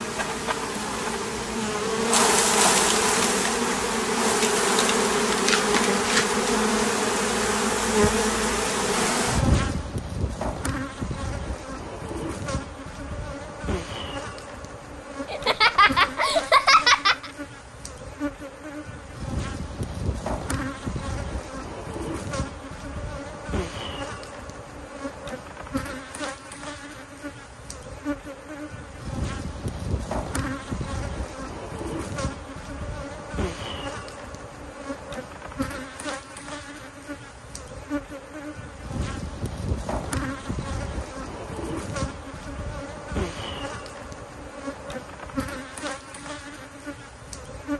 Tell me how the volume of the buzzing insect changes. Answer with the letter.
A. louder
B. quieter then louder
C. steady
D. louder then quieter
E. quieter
E.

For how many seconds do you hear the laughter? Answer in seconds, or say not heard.
2 s.